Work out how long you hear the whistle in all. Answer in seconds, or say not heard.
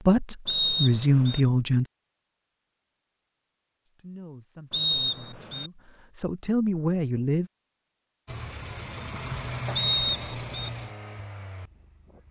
3 s.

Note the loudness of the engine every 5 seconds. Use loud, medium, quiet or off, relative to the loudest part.
off, loud, medium.